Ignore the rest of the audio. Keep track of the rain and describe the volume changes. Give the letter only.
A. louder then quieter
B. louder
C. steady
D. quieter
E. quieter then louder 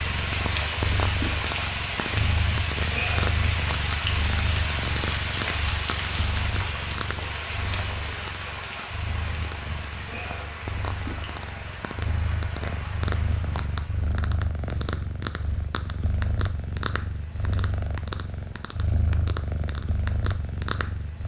D.